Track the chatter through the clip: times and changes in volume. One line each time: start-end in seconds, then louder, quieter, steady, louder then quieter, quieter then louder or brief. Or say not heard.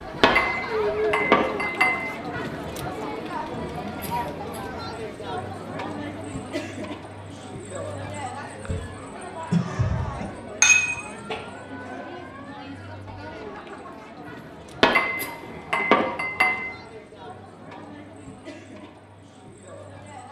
0.0-20.2 quieter.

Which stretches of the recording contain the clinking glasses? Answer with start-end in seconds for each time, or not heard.
0.2-2.2, 10.6-11.4, 14.8-16.8.